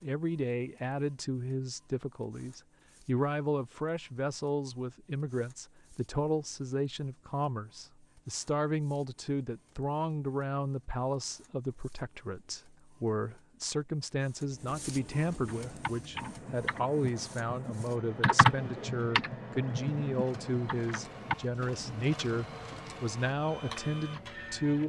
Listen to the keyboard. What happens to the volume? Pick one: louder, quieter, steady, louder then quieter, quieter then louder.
louder then quieter.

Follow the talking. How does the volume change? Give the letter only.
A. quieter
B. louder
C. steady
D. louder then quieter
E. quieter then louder
C.